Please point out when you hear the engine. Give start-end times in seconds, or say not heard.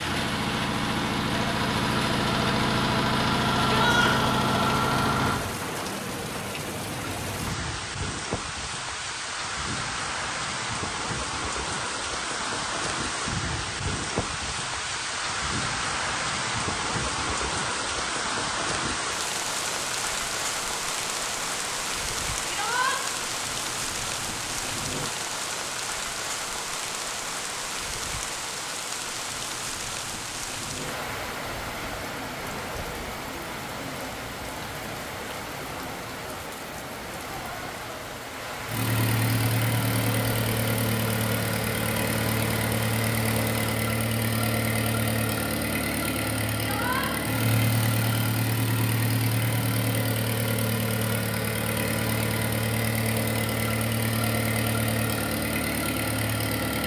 0.0-5.4, 38.6-56.8.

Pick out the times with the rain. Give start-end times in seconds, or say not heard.
0.0-43.6.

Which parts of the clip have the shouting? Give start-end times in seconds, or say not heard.
3.7-4.2, 22.4-22.9, 46.5-47.1.